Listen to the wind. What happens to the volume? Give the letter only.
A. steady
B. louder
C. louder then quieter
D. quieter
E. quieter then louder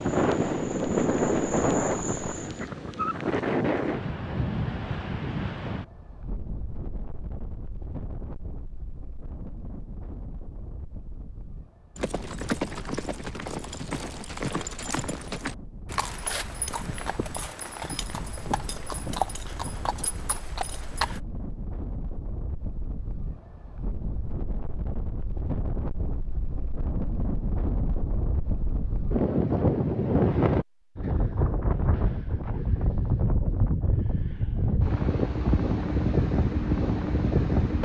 E.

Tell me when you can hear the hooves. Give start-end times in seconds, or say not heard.
11.9-21.2.